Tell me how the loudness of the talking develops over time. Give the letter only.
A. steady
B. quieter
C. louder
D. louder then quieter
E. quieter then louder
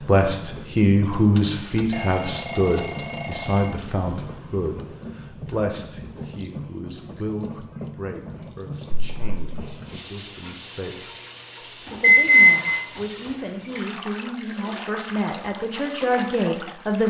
E.